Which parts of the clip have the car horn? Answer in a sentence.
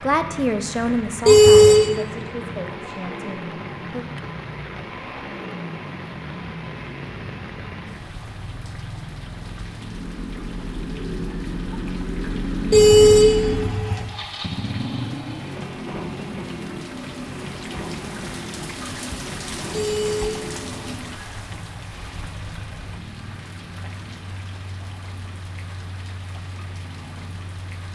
The car horn can be heard from 1.2 to 1.9 s, from 12.7 to 14.1 s and from 19.7 to 21.4 s.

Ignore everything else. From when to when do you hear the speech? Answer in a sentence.
The speech can be heard from 0.0 to 4.0 s.